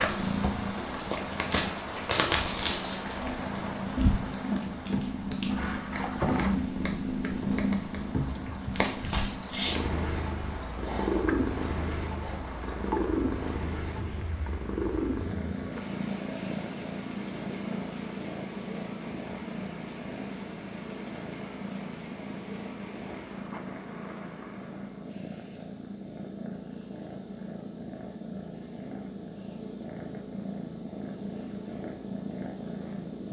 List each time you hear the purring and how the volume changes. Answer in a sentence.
You can hear the purring from 0.0 to 33.2 s, getting quieter.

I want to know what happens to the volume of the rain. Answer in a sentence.
The loudness of the rain goes down.